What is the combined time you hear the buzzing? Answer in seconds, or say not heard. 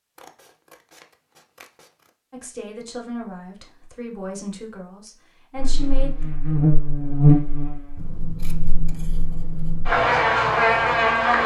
6 s.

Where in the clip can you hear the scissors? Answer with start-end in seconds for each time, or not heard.
0.1-2.1, 8.0-9.9.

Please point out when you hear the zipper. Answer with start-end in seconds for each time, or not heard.
not heard.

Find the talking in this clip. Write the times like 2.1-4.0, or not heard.
2.3-6.3.